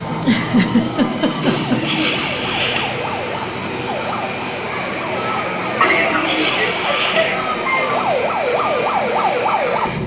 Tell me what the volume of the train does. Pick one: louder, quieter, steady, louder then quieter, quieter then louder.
steady.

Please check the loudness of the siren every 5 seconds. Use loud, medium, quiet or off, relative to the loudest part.
medium, loud.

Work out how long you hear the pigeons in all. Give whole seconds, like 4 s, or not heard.
3 s.